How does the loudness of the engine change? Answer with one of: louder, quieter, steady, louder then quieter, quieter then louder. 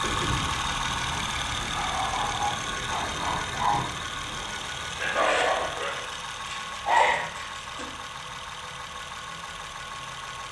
quieter.